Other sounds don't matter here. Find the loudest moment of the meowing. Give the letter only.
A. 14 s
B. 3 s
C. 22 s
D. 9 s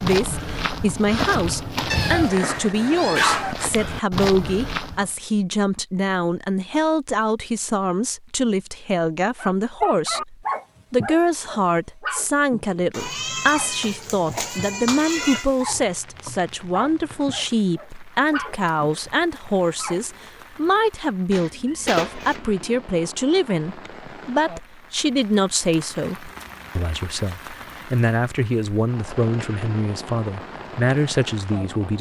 B.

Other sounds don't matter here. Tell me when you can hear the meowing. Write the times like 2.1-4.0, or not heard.
1.9-3.5, 12.9-15.4, 21.3-22.6.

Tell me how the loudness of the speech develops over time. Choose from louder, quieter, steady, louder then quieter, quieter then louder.
steady.